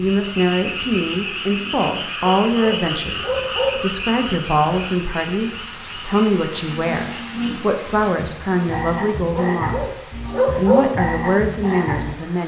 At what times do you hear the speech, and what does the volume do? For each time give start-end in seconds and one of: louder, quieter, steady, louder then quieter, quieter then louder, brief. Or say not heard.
0.0-12.4 steady.